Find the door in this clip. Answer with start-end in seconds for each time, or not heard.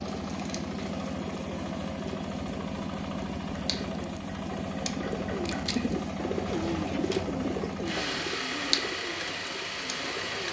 not heard.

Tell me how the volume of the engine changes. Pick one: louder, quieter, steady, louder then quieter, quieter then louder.
steady.